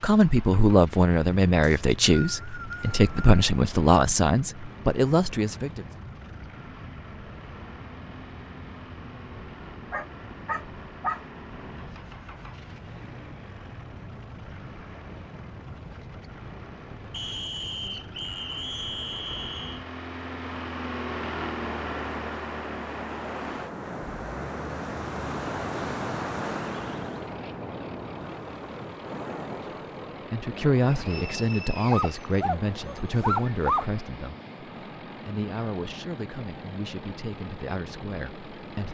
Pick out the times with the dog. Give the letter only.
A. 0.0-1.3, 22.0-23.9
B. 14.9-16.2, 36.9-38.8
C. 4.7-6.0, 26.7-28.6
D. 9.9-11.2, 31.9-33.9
D.